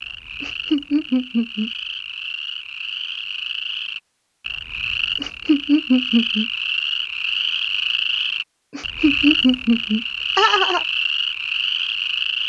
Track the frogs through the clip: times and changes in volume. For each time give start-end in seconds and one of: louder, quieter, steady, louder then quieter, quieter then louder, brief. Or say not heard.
0.0-12.4 louder.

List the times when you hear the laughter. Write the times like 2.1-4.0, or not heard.
0.4-1.7, 5.2-6.5, 8.8-10.8.